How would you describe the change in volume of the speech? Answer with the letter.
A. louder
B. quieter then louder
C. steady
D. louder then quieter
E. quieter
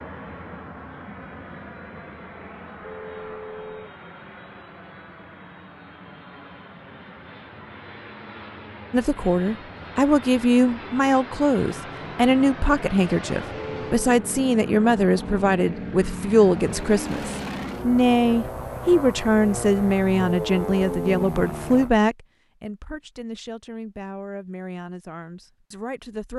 E.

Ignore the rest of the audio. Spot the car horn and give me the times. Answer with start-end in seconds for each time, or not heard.
2.8-4.0, 13.5-14.0, 20.1-21.2.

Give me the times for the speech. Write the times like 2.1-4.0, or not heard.
8.9-26.3.